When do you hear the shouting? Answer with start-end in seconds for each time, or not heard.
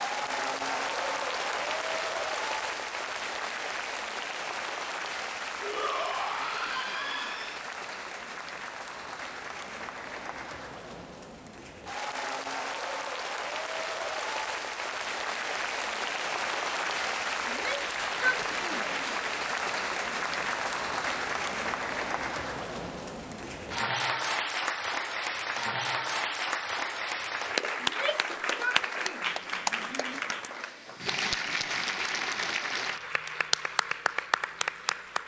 5.6-7.6, 17.4-19.1, 27.8-30.2.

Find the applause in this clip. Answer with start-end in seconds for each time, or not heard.
0.0-35.2.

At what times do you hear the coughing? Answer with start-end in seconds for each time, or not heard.
not heard.